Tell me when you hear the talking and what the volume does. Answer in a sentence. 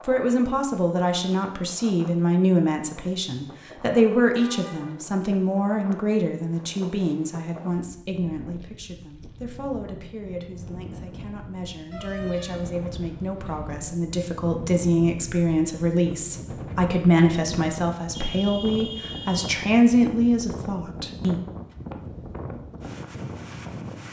You can hear the talking from 0.1 to 21.4 s, getting quieter then louder.